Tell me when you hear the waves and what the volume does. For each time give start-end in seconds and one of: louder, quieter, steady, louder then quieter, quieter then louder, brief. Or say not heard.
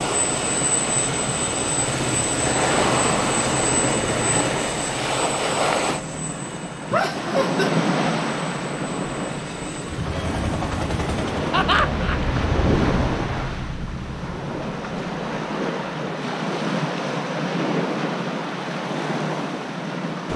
0.0-20.3 steady.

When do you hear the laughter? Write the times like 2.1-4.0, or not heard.
6.9-7.7, 11.5-12.2.